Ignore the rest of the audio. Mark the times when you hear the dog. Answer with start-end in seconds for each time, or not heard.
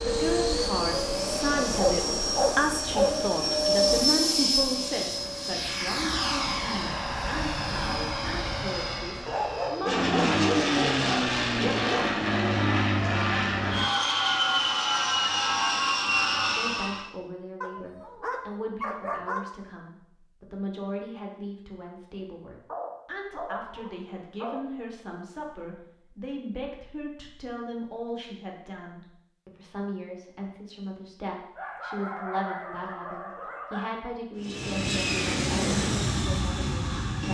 1.8-3.1, 9.2-12.1, 17.6-19.4, 22.6-24.6, 31.6-34.0.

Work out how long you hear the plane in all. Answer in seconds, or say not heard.
20 s.